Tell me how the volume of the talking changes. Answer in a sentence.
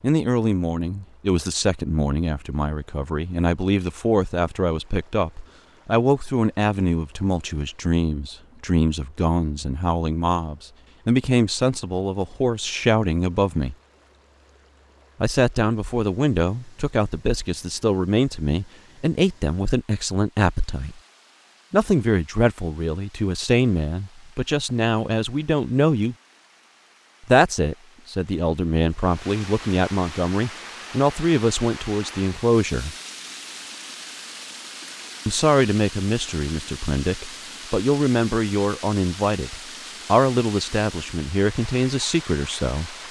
The loudness of the talking stays about the same.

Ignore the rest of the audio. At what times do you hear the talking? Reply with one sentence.
You can hear the talking from 0.0 to 13.8 s, from 15.2 to 21.0 s, from 21.7 to 26.1 s, from 27.2 to 33.0 s and from 35.2 to 43.0 s.